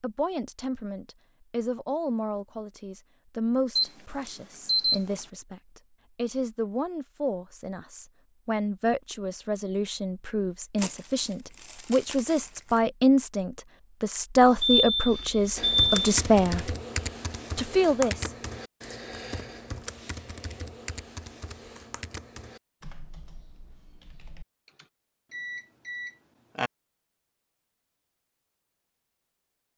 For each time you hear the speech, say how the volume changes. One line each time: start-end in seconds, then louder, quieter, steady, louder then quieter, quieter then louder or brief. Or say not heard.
0.0-16.8 louder
17.6-18.3 brief.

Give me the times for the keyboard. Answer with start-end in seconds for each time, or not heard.
15.6-24.9.